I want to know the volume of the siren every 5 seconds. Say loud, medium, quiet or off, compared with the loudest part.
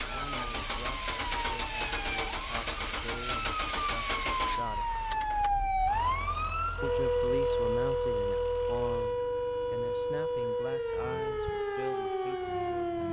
medium, loud, loud.